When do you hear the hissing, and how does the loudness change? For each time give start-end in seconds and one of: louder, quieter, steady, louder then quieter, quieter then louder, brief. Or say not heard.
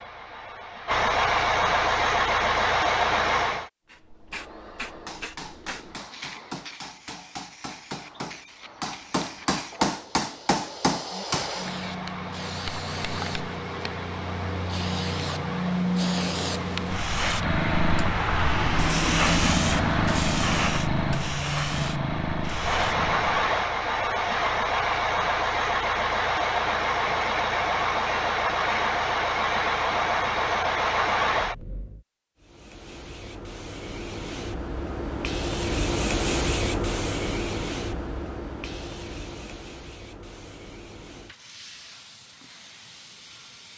3.9-23.5 louder
32.4-43.7 louder then quieter.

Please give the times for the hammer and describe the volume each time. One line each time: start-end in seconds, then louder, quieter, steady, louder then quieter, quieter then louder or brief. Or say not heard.
5.0-11.5 louder.